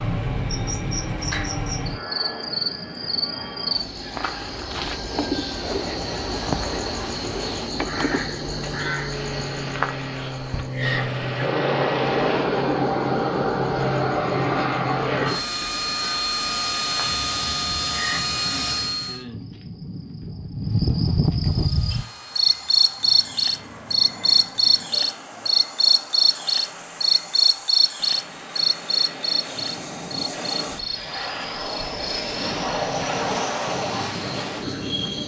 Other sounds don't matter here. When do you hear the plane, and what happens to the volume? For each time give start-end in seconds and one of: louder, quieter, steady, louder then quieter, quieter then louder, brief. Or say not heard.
0.0-19.2 louder
21.4-35.2 louder.